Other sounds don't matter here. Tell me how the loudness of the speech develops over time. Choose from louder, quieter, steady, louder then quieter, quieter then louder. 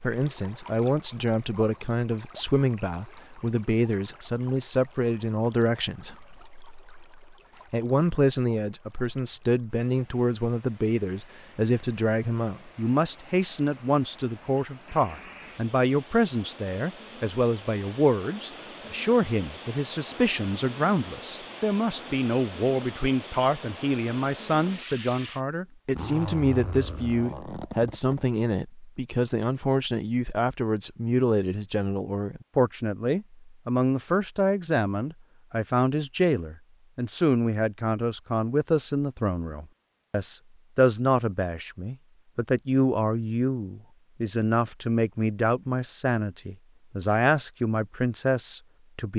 steady.